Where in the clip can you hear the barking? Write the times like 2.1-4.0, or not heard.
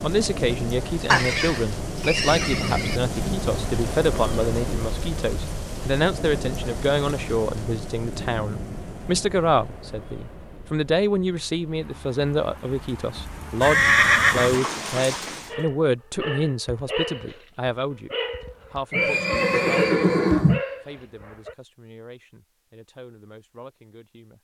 15.5-21.6.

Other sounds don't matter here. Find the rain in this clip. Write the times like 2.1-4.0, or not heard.
0.0-15.6.